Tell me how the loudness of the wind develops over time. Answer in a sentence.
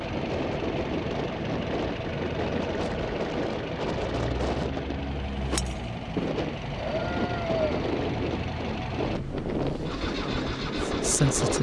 The volume of the wind stays about the same.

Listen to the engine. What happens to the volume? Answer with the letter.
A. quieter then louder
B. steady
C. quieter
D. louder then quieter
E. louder
B.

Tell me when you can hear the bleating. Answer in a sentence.
The bleating can be heard from 6.8 to 7.9 s.